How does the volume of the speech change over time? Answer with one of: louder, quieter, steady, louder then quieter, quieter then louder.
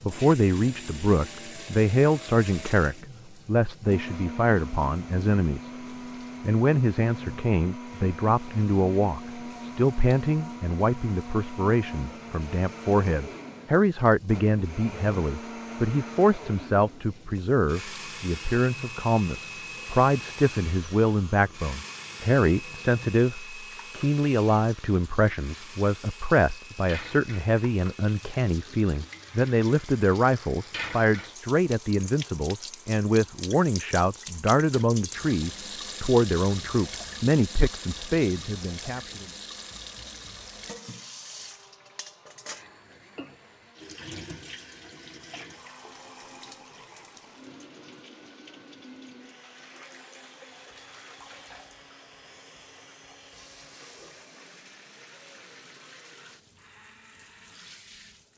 steady.